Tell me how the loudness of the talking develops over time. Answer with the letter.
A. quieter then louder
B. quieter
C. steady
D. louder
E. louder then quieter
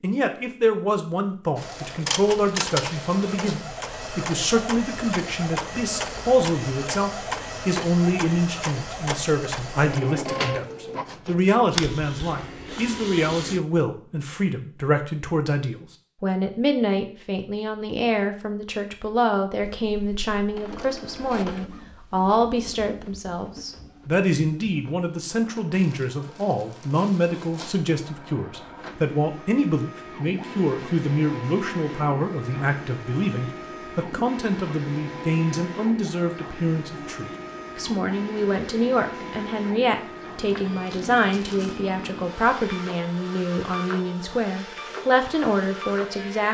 C.